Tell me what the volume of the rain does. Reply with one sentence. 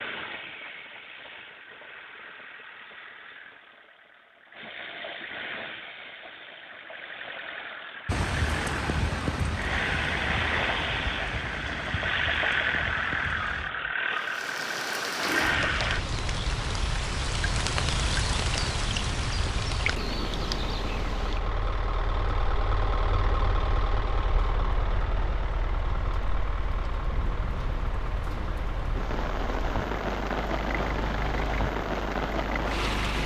The volume of the rain goes down, then up.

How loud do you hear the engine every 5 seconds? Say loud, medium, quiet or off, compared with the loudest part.
quiet, medium, loud, loud, medium, medium, medium.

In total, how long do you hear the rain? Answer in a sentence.
The rain can be heard for 25 seconds in total.